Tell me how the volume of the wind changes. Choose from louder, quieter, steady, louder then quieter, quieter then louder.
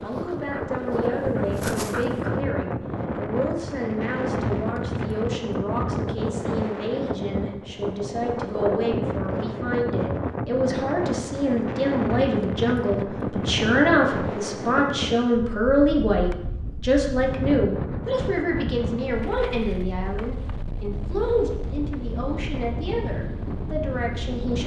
quieter.